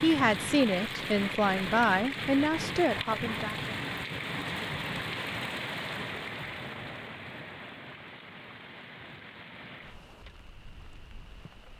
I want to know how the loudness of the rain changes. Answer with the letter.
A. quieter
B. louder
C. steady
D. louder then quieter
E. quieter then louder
A.